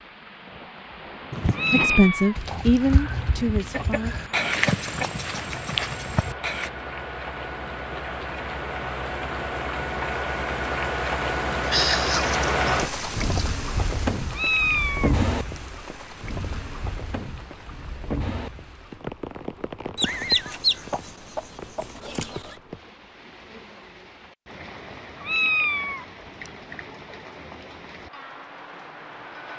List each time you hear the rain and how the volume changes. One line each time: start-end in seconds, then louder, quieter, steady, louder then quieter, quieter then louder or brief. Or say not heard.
0.0-29.5 louder then quieter.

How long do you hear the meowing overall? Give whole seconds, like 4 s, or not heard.
4 s.